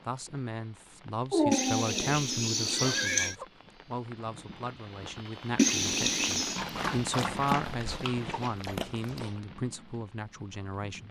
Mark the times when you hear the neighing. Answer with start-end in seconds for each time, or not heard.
1.5-3.4, 5.5-6.7.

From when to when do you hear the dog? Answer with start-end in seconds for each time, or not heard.
1.3-3.5, 6.5-9.3.